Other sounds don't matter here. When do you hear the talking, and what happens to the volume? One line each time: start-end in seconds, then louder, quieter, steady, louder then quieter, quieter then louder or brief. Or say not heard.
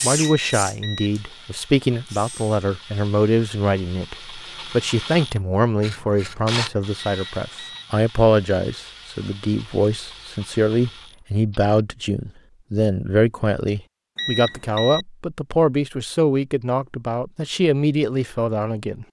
0.0-19.0 steady.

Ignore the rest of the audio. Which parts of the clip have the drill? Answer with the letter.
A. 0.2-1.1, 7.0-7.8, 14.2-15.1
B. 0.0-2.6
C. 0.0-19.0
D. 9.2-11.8
B.